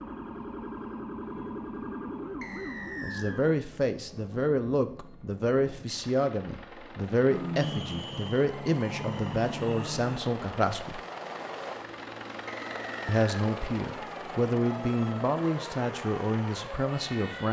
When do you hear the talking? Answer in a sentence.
The talking can be heard from 3.0 to 11.0 s and from 13.1 to 17.4 s.